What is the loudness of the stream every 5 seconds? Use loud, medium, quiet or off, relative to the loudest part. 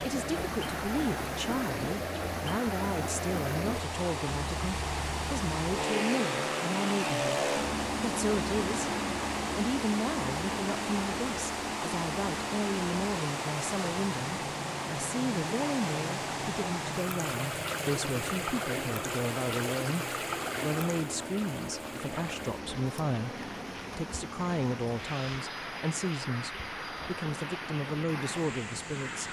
loud, loud, loud, loud, medium, medium.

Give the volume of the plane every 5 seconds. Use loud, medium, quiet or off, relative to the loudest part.
medium, loud, medium, medium, medium, medium.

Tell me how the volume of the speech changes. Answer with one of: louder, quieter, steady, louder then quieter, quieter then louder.
steady.